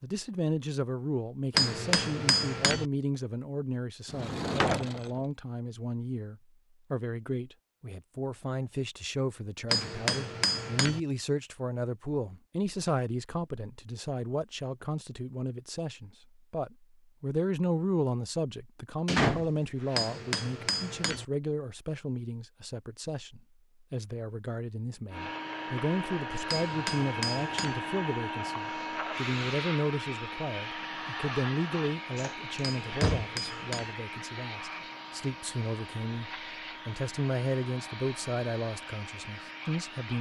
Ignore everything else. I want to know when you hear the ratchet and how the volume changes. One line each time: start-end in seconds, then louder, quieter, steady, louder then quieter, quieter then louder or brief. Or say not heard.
not heard.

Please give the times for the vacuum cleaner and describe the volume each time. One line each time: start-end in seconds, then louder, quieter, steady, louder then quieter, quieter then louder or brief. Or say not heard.
25.1-40.1 quieter.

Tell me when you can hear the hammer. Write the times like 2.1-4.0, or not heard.
1.6-2.9, 9.7-11.0, 19.9-21.2, 26.4-27.8, 32.6-34.0.